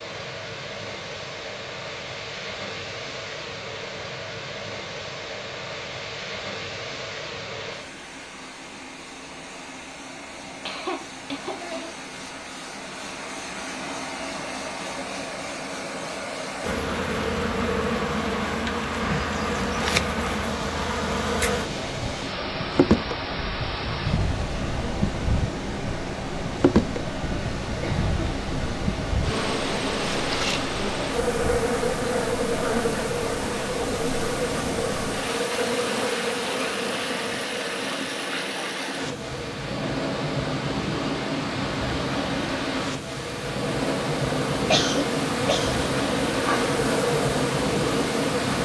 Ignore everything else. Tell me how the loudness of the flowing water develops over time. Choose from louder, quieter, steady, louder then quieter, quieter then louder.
louder.